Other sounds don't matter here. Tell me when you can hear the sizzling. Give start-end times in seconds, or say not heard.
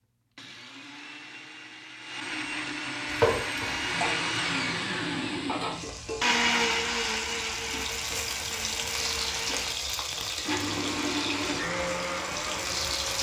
3.0-13.1.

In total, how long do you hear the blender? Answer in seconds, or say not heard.
13 s.